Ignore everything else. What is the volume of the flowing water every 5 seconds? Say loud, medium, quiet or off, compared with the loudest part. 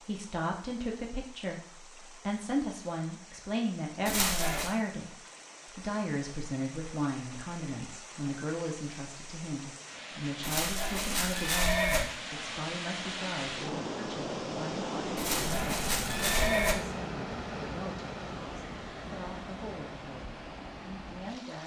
quiet, medium, loud, loud, medium.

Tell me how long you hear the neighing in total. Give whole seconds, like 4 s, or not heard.
4 s.